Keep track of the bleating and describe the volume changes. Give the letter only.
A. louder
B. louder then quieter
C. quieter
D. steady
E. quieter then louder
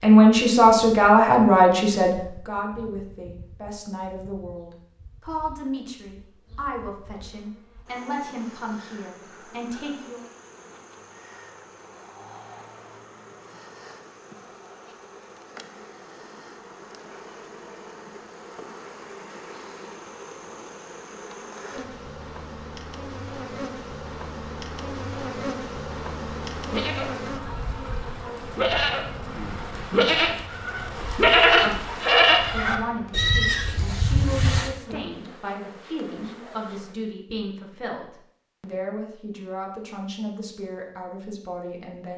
B.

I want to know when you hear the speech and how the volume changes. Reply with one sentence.
You can hear the speech from 0.0 to 10.2 s, getting quieter; and from 32.5 to 42.1 s, at a steady volume.